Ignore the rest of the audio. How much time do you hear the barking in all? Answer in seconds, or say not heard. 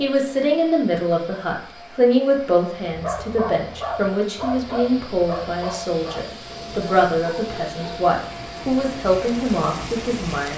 5 s.